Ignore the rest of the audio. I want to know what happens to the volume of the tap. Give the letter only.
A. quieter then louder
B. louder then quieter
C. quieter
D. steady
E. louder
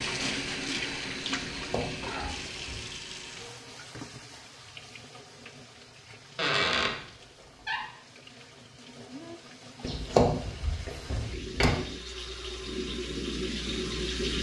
A.